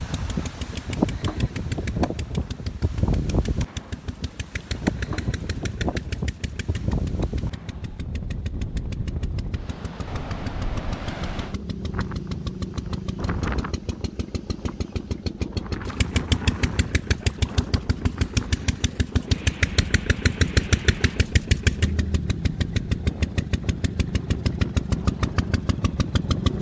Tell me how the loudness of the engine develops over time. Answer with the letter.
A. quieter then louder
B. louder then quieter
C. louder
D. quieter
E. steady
C.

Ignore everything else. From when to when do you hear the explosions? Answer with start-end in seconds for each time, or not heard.
not heard.